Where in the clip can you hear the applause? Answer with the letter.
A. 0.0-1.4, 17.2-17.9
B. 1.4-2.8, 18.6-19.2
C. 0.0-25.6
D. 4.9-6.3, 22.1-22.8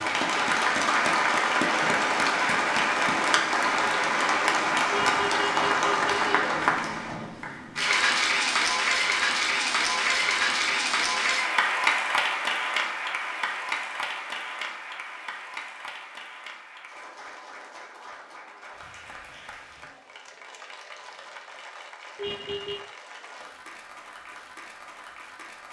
C.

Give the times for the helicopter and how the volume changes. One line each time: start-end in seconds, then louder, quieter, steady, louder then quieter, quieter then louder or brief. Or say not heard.
not heard.